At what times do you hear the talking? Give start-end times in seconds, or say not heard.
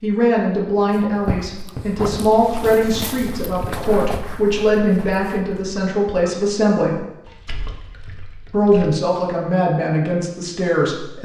0.0-7.0, 8.5-11.2.